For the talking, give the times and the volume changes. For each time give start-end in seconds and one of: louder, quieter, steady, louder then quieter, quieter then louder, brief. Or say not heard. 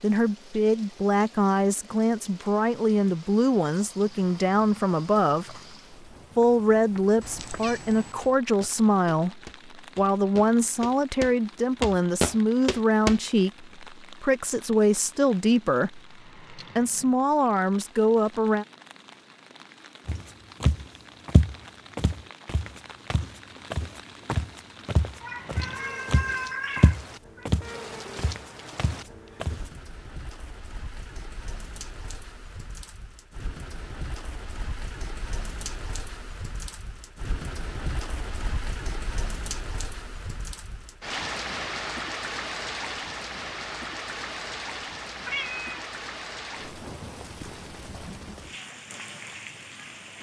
0.0-5.5 steady
6.3-18.6 steady.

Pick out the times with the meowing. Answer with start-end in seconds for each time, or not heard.
7.2-8.3, 25.2-27.4, 45.2-45.8.